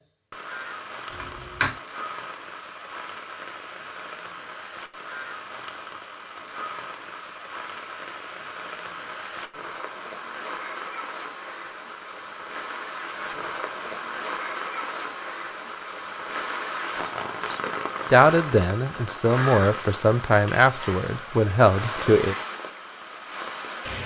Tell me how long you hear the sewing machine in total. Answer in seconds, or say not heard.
not heard.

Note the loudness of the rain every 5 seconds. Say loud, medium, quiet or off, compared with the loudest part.
medium, medium, loud, loud, loud.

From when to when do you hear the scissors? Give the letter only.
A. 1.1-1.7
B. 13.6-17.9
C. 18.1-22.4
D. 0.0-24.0
A.